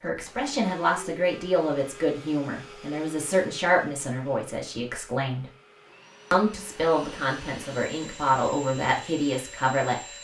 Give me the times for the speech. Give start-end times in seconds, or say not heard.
0.0-5.5, 6.3-10.0.